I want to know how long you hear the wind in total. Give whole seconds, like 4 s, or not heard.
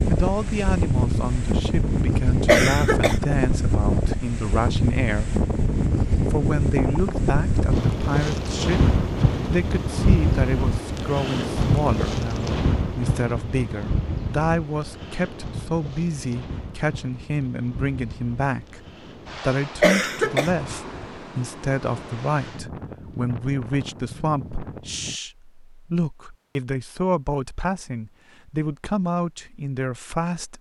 25 s.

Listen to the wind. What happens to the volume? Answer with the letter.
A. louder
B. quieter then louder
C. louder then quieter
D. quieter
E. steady
D.